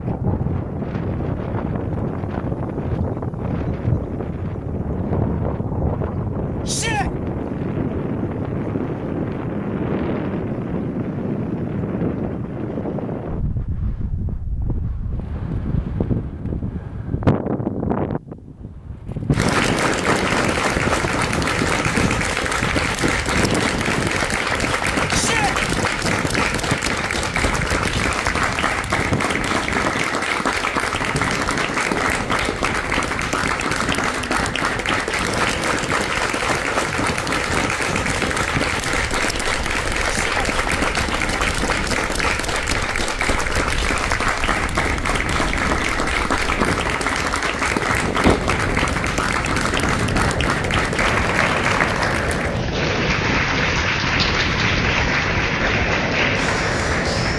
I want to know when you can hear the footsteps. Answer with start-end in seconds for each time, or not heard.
not heard.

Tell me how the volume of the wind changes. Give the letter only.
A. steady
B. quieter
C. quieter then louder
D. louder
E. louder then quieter
C.